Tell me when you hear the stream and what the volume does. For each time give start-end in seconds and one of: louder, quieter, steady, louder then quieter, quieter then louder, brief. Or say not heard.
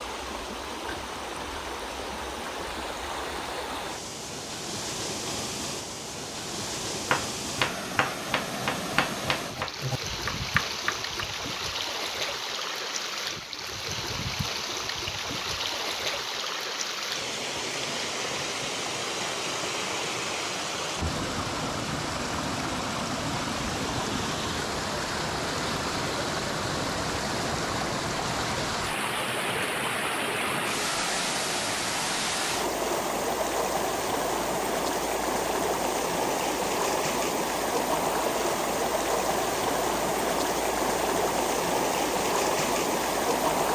0.0-43.6 louder.